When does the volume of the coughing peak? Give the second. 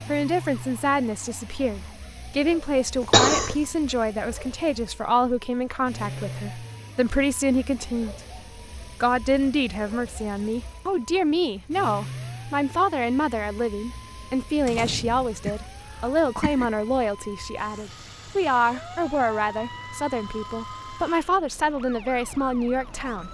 3 s.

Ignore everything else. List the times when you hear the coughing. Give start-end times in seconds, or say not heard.
3.0-3.5, 15.4-16.7.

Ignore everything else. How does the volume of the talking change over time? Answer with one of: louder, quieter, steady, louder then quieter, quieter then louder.
steady.